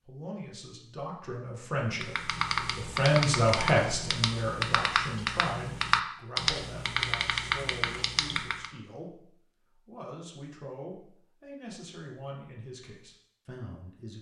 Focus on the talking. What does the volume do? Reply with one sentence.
The loudness of the talking goes up, then down.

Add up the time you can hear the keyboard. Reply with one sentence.
You can hear the keyboard for 7 seconds altogether.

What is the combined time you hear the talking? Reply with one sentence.
You can hear the talking for 14 seconds altogether.